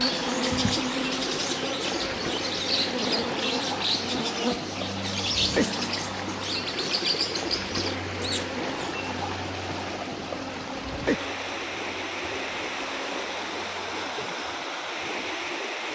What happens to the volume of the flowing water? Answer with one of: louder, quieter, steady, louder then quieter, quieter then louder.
steady.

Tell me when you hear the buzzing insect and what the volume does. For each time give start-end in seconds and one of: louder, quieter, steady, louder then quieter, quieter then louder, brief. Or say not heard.
0.0-14.2 quieter.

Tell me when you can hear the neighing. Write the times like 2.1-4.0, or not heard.
not heard.